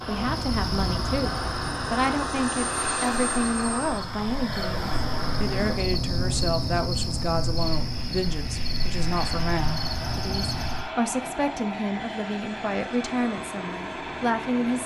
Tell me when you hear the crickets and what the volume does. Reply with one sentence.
You can hear the crickets from 0.0 to 10.9 s, getting quieter then louder.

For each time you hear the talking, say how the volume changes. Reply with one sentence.
The talking can be heard from 0.1 to 14.8 s, at a steady volume.